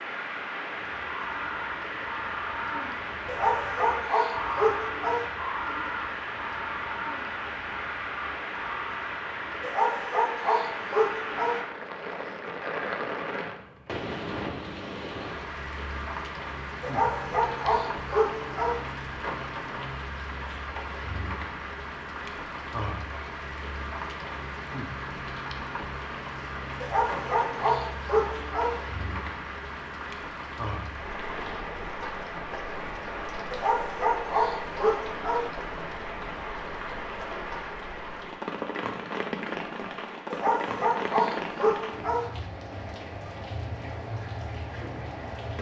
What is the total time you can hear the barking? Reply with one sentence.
The barking can be heard for 12 seconds in total.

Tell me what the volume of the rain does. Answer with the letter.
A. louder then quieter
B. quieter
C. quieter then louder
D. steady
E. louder
D.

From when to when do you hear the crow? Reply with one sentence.
The crow can be heard from 0.9 to 9.4 s.